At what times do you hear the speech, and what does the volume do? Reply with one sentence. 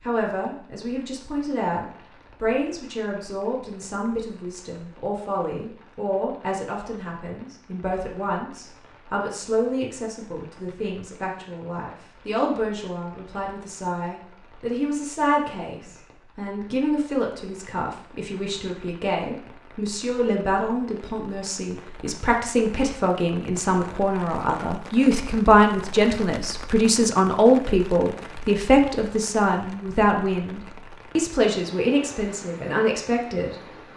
The speech can be heard from 0.0 to 33.5 s, getting louder.